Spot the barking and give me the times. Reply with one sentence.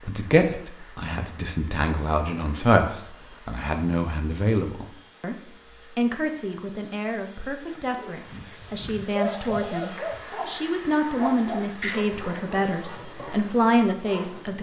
You can hear the barking from 8.0 to 14.5 s.